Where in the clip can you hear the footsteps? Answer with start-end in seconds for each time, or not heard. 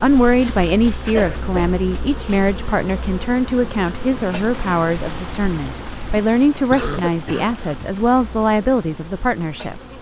not heard.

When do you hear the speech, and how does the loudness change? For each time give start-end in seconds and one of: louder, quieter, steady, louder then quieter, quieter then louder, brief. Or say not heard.
0.0-9.8 steady.